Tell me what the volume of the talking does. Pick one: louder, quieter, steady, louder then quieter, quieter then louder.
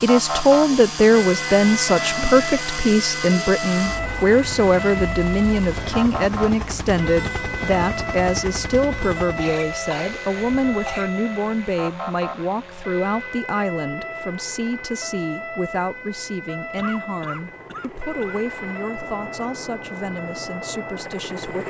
quieter.